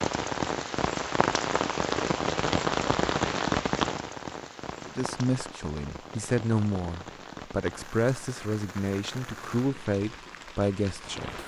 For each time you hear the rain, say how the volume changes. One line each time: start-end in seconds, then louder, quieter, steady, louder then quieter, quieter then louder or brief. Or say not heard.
0.0-11.4 quieter.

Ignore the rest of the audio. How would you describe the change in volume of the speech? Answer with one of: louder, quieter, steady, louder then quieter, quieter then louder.
steady.